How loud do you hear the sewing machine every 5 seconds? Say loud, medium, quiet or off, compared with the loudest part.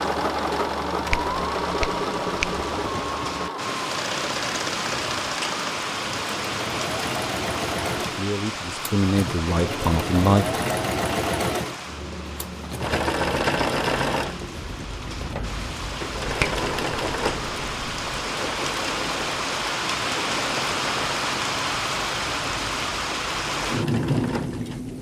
loud, medium, loud, medium, medium.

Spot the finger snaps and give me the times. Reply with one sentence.
The finger snaps can be heard from 1.1 to 2.6 s and from 16.2 to 18.2 s.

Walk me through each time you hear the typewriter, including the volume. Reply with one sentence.
The typewriter can't be heard in this clip.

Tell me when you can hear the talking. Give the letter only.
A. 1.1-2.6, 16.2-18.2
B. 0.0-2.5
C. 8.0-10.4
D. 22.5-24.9
C.